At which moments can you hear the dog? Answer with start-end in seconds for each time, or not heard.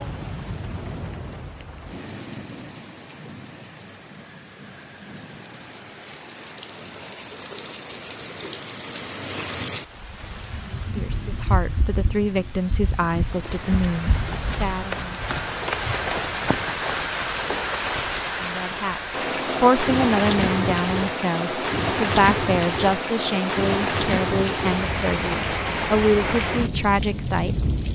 not heard.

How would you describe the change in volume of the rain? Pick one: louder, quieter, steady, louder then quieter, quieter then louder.
louder.